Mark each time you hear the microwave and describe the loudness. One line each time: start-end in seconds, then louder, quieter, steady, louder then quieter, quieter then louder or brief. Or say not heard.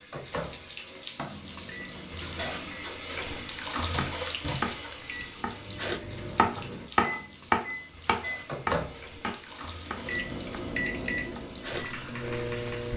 0.0-12.9 louder.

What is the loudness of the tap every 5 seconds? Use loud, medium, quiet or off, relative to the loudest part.
loud, medium, medium.